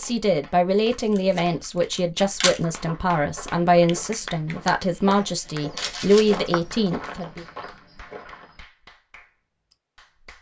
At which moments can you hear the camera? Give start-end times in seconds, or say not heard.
0.9-2.6, 5.8-6.4.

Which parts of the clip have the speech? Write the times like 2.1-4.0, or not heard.
0.0-7.5.